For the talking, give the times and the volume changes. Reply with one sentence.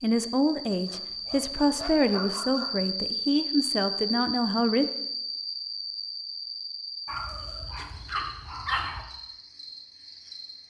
You can hear the talking from 0.0 to 4.8 s, at a steady volume.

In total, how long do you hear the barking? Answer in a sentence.
You can hear the barking for 4 seconds altogether.